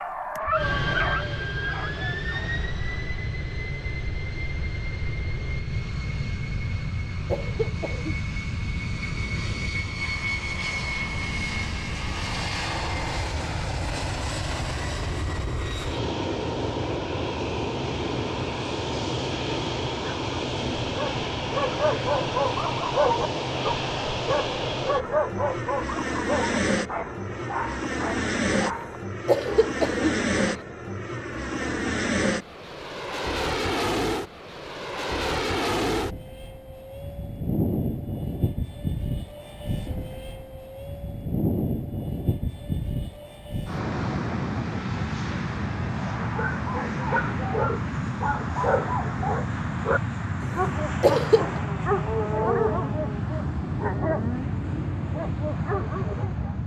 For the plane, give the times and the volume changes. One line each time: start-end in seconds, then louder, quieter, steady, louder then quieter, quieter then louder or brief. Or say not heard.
0.1-56.6 steady.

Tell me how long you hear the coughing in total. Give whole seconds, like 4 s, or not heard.
3 s.